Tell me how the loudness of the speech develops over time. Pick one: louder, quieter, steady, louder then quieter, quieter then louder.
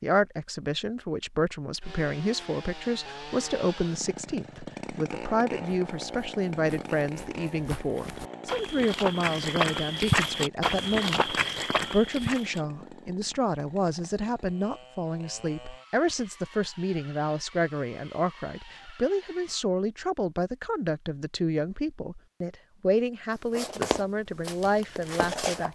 steady.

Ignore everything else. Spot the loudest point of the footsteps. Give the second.
10 s.